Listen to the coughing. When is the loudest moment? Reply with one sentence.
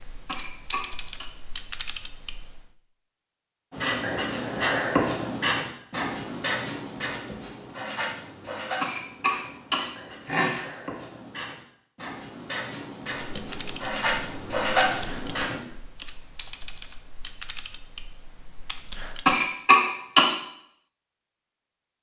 The volume of the coughing peaks at 20 seconds.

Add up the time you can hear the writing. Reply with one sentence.
You can hear the writing for 12 seconds altogether.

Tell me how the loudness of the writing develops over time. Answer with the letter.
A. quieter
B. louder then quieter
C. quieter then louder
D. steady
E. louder
C.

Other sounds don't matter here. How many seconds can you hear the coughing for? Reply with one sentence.
The coughing can be heard for 4 seconds in total.